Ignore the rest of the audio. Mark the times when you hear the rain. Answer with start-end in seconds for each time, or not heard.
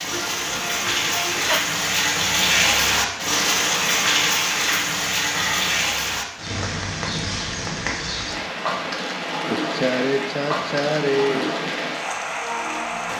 0.0-13.1.